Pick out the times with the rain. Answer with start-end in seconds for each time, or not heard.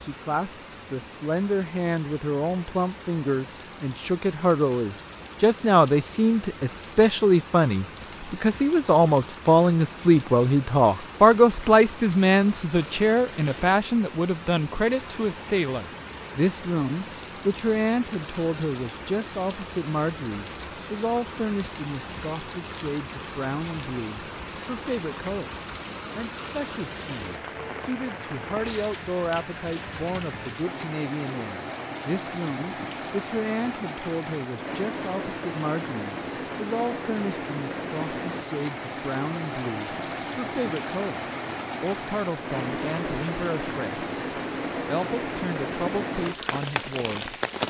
0.0-47.6.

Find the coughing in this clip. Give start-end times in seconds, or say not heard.
not heard.